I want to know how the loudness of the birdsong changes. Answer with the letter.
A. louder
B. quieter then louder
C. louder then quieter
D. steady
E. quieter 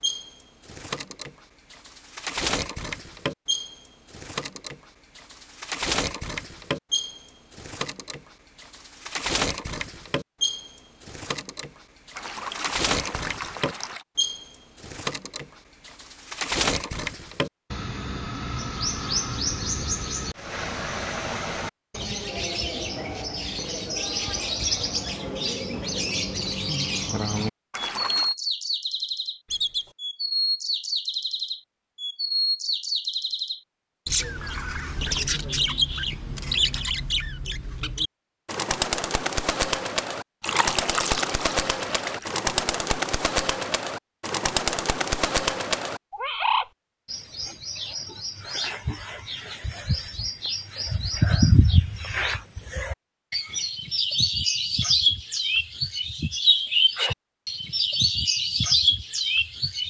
A.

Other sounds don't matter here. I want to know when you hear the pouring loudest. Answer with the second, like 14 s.
41 s.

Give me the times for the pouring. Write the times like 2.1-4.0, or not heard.
12.2-14.1, 27.7-28.4, 40.4-42.4.